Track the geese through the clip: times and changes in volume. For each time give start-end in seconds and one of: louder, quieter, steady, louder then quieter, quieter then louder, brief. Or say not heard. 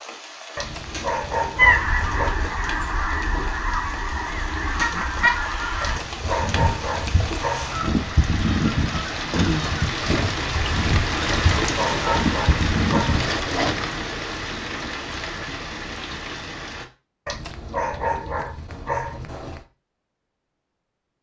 1.6-13.2 steady.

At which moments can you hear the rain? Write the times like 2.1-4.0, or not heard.
0.0-16.9.